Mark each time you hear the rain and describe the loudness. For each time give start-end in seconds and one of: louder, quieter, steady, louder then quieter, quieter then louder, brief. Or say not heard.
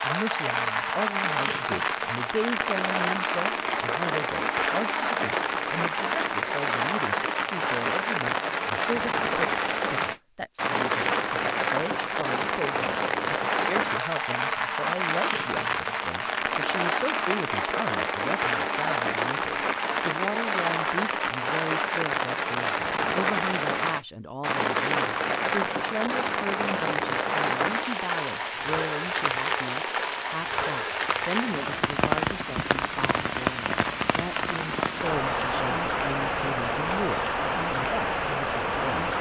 0.0-39.1 steady.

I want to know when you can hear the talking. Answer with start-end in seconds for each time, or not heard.
0.0-39.1.